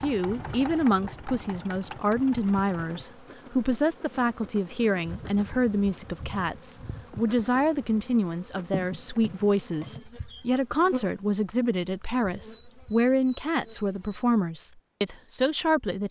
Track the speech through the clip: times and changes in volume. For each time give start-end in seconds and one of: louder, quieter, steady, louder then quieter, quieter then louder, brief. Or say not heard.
0.0-16.0 steady.